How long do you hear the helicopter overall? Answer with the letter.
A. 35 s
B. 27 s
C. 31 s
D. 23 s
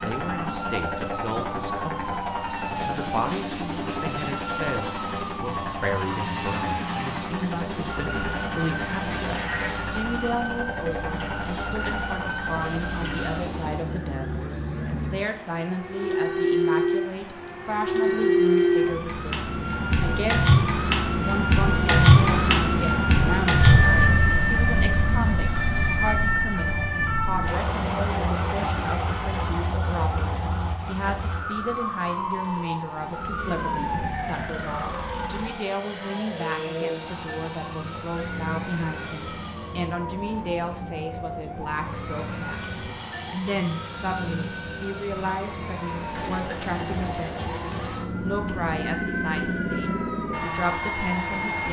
C.